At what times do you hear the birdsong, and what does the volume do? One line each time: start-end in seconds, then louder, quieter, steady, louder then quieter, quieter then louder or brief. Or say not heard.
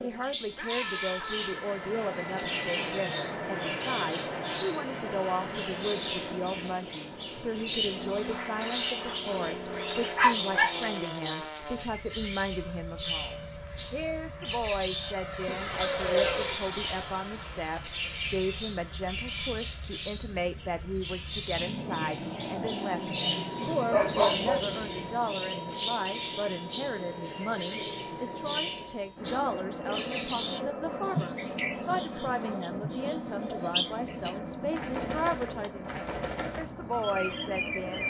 0.0-38.0 steady.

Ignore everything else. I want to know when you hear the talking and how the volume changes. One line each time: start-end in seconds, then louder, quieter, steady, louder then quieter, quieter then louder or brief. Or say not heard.
0.0-38.0 steady.